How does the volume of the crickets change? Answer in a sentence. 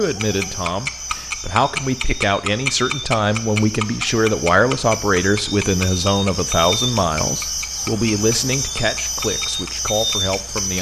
The volume of the crickets goes up.